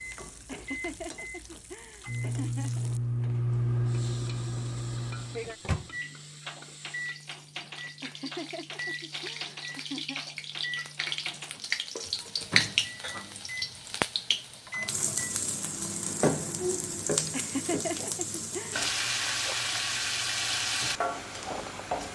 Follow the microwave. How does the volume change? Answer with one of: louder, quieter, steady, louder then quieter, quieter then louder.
quieter.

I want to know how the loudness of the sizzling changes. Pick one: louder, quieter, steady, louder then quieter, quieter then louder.
louder.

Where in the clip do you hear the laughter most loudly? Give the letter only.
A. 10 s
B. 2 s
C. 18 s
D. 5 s
C.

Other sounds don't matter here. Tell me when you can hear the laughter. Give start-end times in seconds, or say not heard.
0.5-2.9, 8.0-10.2, 17.3-18.8.